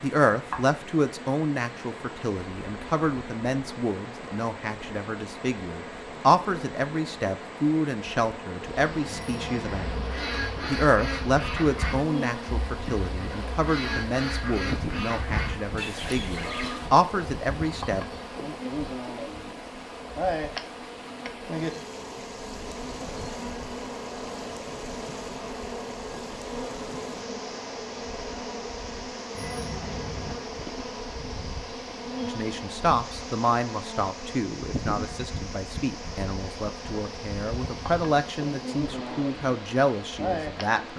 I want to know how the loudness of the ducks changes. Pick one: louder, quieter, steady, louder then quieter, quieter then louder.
steady.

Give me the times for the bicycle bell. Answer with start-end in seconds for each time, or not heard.
9.1-10.1, 29.3-30.4.